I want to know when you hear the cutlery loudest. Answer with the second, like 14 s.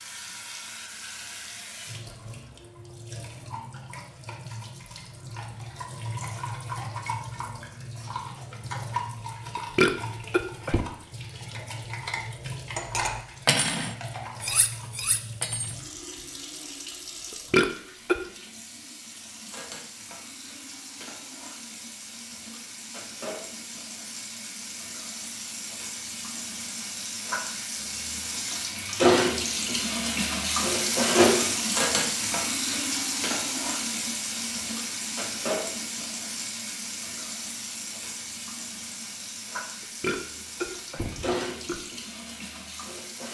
14 s.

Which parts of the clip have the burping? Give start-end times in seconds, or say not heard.
9.8-10.8, 17.5-18.2, 40.0-41.8.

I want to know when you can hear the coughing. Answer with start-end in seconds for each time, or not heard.
not heard.